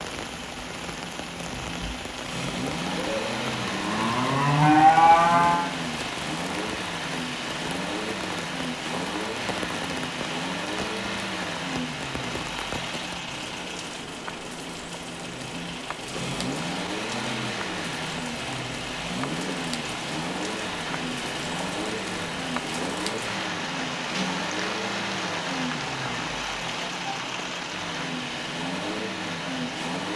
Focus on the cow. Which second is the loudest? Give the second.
5 s.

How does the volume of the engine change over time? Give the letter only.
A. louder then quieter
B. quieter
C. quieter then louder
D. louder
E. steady
E.